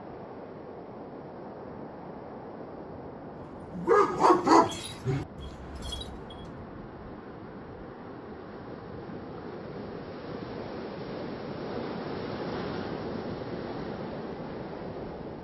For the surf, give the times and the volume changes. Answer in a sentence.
The surf can be heard from 0.0 to 15.3 s, getting louder.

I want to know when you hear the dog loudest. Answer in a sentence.
The loudest moment of the dog is at 4 seconds.